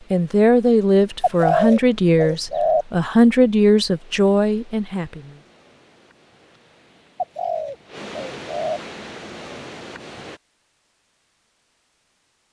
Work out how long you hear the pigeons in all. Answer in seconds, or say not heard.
3 s.